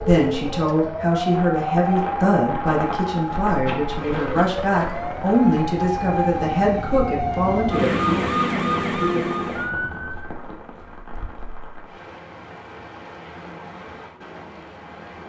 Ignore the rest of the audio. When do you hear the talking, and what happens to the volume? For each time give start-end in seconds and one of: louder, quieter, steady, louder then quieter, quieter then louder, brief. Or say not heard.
0.0-8.2 steady.